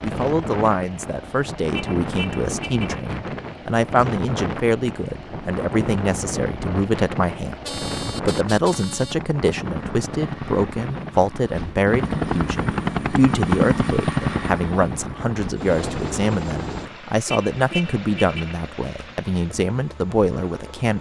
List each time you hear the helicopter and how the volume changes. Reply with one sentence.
The helicopter can be heard from 0.2 to 20.9 s, getting louder then quieter.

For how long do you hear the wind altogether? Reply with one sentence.
You can hear the wind for 17 seconds altogether.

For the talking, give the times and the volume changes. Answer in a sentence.
You can hear the talking from 0.0 to 20.9 s, at a steady volume.